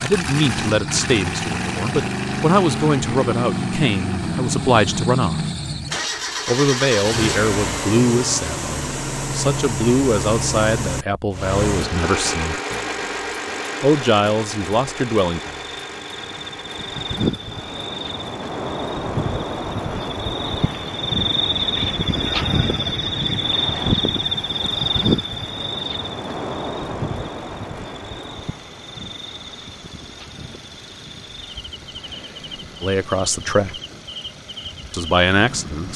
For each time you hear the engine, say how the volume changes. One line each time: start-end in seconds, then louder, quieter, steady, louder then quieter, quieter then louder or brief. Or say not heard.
0.0-35.9 quieter.